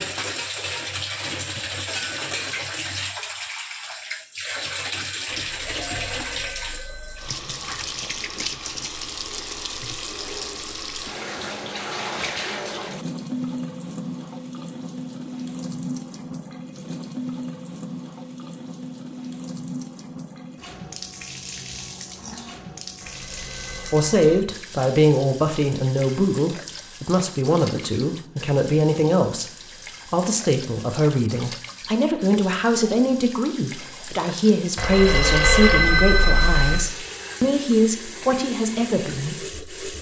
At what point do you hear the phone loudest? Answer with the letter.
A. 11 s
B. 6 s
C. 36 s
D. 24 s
C.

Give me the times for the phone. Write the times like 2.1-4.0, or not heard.
5.5-7.3, 23.0-24.4, 34.8-36.8.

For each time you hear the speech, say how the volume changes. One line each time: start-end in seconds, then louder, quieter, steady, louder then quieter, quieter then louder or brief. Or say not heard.
23.9-39.6 steady.